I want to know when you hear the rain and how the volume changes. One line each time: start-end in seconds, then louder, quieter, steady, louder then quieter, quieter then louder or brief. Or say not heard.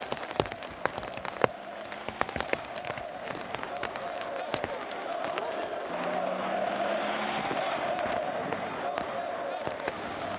0.0-10.3 quieter then louder.